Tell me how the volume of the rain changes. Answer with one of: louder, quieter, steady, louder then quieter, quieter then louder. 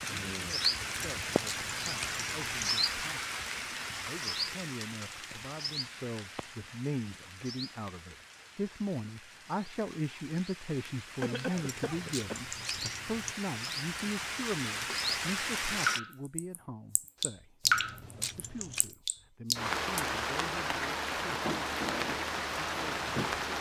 quieter then louder.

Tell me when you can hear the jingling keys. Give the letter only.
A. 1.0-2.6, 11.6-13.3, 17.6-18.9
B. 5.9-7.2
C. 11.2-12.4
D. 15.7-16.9
A.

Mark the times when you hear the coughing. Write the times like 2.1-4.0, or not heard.
11.2-12.4.